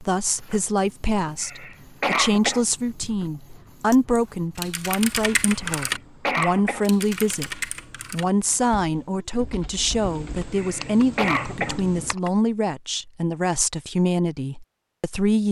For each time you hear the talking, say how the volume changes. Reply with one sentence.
The talking can be heard from 0.0 to 15.4 s, at a steady volume.